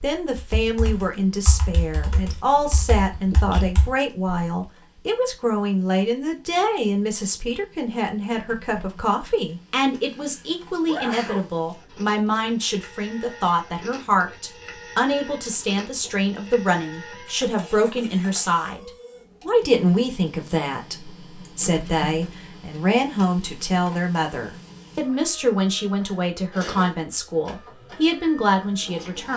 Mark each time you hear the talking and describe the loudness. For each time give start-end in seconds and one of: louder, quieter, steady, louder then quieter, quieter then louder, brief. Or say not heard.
0.0-29.3 steady.